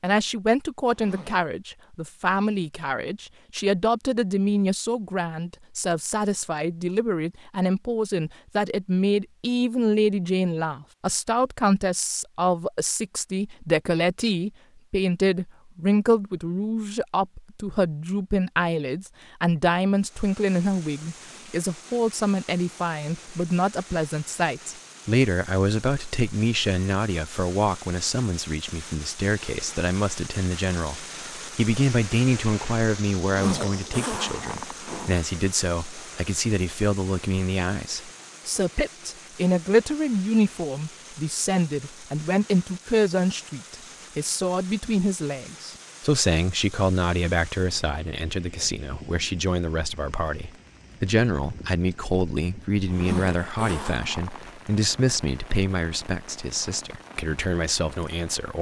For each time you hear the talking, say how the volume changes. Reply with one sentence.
The talking can be heard from 0.0 to 58.5 s, at a steady volume.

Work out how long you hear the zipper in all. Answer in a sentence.
You can hear the zipper for 4 seconds altogether.